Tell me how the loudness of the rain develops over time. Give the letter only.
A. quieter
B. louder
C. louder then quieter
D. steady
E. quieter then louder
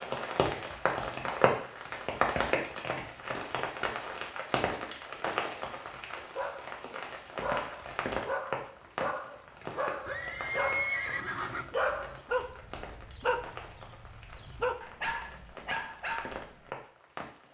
A.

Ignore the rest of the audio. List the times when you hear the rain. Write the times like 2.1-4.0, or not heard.
0.0-17.4.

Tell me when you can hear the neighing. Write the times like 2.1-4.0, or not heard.
10.1-11.7.